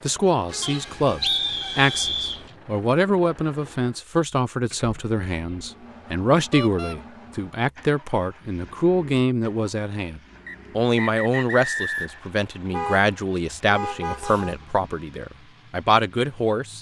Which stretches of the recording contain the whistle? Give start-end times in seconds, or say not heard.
0.6-2.4, 10.4-12.2.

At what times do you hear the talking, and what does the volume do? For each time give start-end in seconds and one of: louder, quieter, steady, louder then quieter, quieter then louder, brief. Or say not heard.
0.0-16.7 steady.